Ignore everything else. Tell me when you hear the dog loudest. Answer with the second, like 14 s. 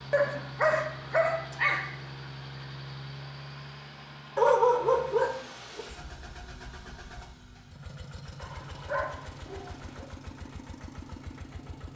5 s.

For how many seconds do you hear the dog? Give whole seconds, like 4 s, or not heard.
5 s.